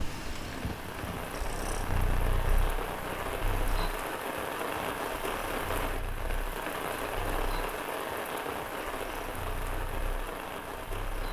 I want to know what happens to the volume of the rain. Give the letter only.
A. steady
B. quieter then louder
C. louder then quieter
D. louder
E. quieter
A.